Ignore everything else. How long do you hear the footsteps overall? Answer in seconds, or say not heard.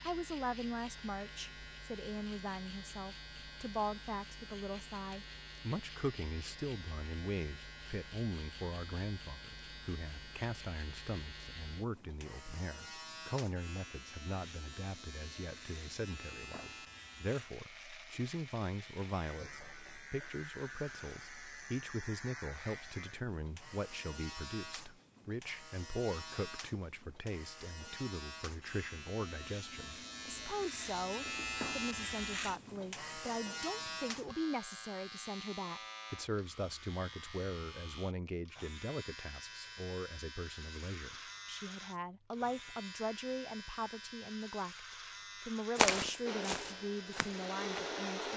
2 s.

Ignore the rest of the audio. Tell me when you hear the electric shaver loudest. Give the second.
32 s.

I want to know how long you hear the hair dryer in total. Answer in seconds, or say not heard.
2 s.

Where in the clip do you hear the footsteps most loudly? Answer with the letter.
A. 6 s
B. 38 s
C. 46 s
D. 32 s
C.